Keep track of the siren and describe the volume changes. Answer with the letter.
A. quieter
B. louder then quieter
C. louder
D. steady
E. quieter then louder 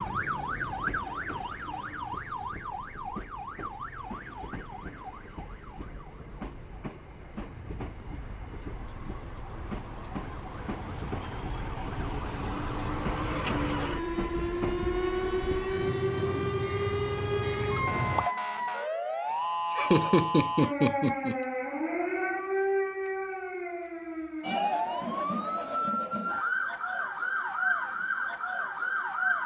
E.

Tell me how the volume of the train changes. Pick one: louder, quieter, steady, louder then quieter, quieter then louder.
louder.